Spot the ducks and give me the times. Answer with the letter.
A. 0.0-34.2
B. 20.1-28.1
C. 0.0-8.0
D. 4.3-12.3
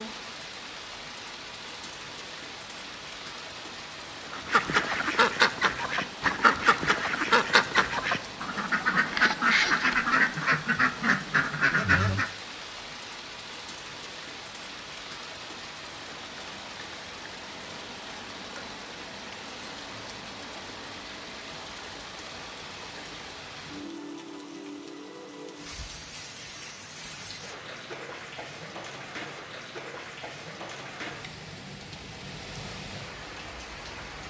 D.